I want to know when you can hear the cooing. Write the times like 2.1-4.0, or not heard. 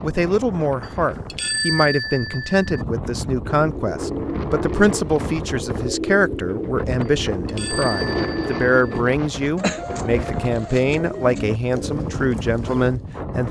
3.4-13.1.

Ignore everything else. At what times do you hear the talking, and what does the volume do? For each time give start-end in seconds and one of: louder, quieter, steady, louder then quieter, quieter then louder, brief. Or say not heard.
0.0-13.4 steady.